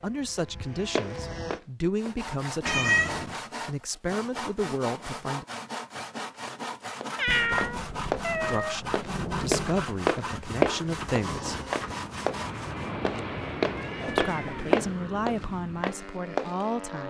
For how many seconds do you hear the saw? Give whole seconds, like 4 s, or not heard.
11 s.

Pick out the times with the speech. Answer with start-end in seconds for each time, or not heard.
0.0-5.5, 8.4-11.6, 14.1-17.0.